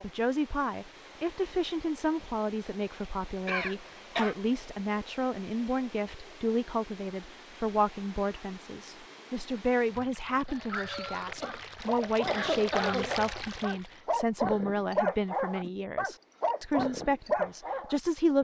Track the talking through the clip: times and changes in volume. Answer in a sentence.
You can hear the talking from 0.0 to 18.3 s, at a steady volume.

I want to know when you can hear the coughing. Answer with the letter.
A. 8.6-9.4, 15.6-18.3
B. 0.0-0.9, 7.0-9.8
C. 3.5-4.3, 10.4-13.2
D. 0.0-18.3
C.